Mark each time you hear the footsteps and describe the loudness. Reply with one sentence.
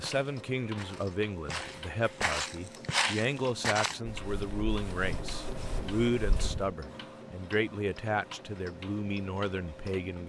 The footsteps can be heard from 0.0 to 6.8 s, getting louder then quieter.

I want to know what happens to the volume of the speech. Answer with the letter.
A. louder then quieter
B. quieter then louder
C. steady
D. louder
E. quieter
C.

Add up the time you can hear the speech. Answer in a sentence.
You can hear the speech for 10 seconds altogether.